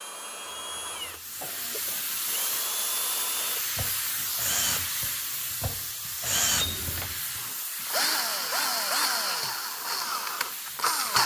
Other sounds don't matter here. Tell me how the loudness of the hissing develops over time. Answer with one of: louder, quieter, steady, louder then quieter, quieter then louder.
quieter.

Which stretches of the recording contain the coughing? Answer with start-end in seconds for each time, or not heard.
0.5-2.0, 6.5-7.2.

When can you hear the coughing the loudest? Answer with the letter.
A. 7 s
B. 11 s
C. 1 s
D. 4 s
A.